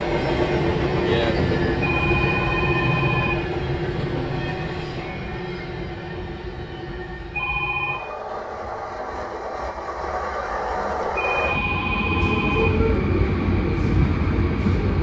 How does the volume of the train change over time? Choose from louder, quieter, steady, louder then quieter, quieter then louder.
quieter then louder.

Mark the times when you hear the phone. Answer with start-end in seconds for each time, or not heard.
1.8-3.4, 7.3-8.0, 11.2-12.7.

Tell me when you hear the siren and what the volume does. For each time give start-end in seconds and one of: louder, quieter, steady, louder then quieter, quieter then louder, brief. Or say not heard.
not heard.